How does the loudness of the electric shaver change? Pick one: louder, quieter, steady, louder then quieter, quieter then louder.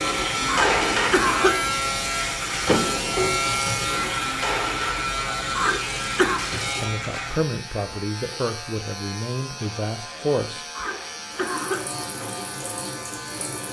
quieter.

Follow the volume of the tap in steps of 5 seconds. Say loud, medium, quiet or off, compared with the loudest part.
loud, medium, medium.